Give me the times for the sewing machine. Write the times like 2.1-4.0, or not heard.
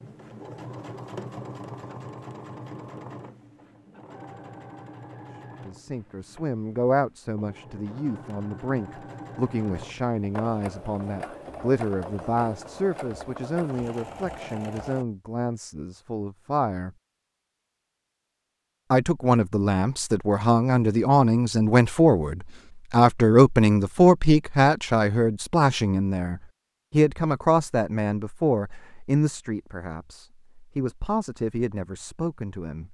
0.0-15.1.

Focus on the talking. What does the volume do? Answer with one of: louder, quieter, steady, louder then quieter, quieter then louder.
louder then quieter.